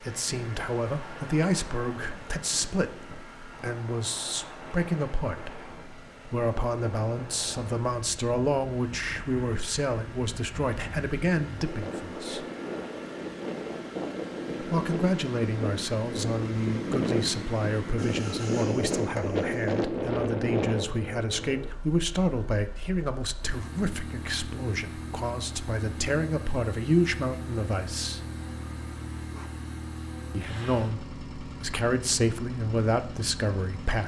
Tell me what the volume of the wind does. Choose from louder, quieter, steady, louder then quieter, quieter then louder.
louder.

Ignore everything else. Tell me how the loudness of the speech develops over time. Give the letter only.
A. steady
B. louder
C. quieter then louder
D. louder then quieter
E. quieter
A.